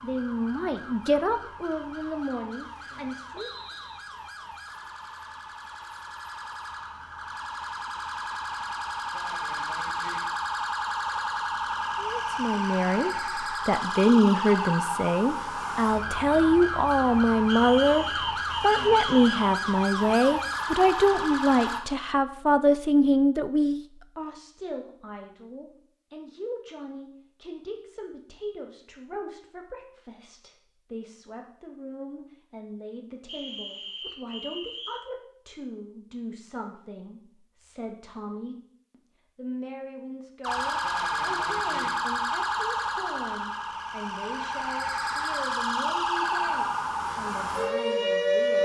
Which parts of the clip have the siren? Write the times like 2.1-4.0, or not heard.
0.0-21.8, 40.4-48.5.